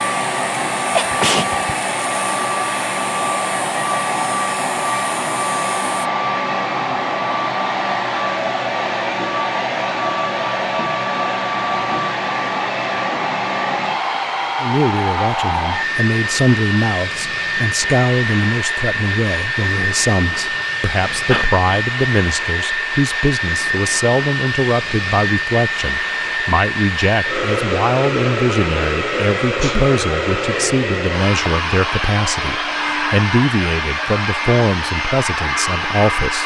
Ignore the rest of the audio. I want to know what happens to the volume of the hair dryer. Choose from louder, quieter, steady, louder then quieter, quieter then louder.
steady.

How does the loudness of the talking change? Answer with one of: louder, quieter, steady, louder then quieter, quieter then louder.
steady.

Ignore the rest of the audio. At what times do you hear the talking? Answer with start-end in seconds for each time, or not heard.
14.6-36.4.